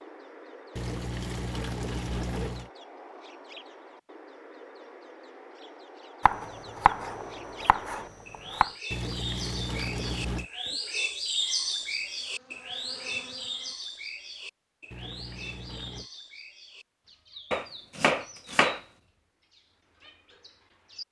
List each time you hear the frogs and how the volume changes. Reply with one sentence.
The frogs can't be heard in this clip.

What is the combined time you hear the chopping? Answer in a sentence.
The chopping can be heard for 4 seconds in total.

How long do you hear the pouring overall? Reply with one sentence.
You can hear the pouring for 5 seconds altogether.